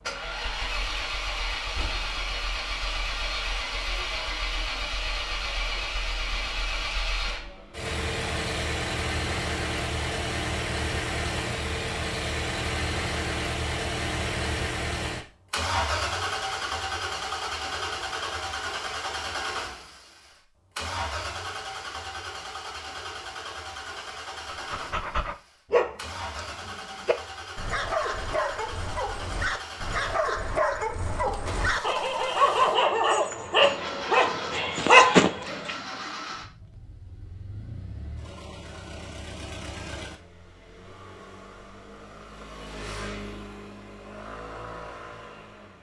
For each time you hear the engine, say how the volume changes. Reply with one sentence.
You can hear the engine from 0.0 to 45.7 s, getting quieter.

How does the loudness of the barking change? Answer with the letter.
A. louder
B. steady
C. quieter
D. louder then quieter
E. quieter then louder
A.